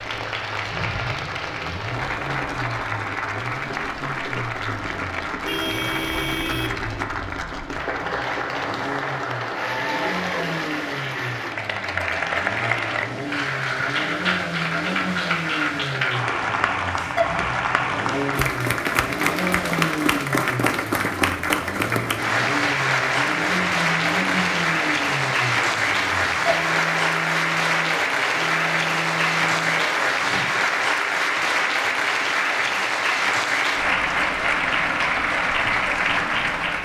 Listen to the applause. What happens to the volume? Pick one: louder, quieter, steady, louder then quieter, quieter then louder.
louder.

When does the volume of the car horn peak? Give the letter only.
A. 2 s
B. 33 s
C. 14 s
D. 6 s
D.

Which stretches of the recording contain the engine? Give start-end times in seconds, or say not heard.
0.0-30.6.